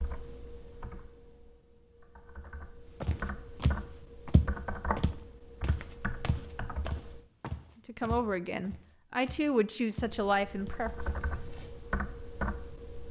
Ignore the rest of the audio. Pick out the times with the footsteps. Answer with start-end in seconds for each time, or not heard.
3.0-11.8.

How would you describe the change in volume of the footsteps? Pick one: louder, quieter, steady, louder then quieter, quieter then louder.
quieter then louder.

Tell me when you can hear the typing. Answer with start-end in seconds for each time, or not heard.
0.0-7.2, 10.1-13.0.